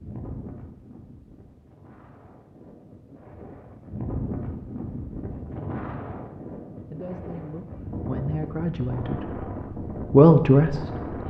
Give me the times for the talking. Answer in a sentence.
You can hear the talking from 6.9 to 9.4 s and from 10.1 to 11.2 s.